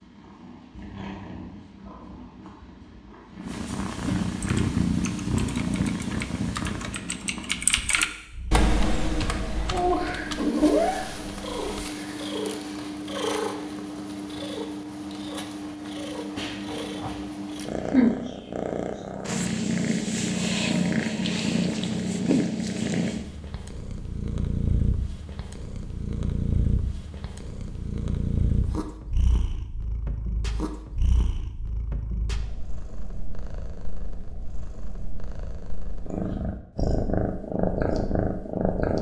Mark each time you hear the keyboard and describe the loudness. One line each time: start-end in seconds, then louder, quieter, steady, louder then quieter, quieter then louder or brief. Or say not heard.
4.3-11.9 louder then quieter.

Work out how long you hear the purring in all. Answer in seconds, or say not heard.
39 s.